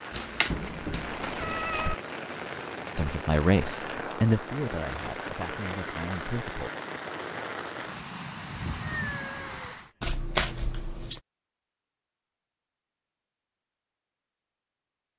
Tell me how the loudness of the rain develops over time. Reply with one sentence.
The volume of the rain stays about the same.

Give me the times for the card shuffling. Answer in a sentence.
The card shuffling can be heard from 0.1 to 1.9 s and from 10.0 to 11.2 s.